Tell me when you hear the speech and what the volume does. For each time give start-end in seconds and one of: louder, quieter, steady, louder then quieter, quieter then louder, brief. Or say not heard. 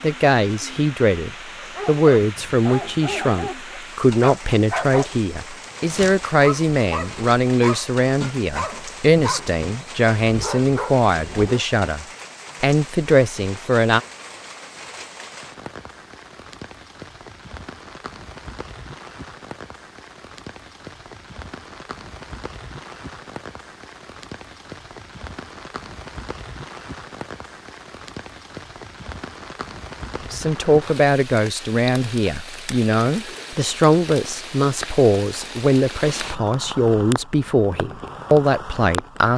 0.0-14.0 steady
30.3-39.3 steady.